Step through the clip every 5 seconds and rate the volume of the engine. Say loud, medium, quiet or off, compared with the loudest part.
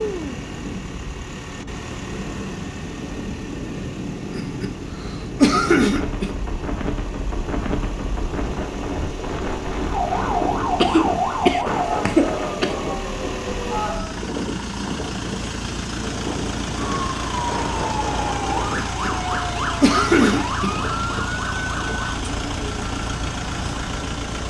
medium, medium, loud, loud, loud.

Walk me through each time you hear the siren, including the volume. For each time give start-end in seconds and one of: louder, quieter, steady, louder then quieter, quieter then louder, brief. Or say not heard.
9.8-14.1 quieter
16.8-22.2 steady.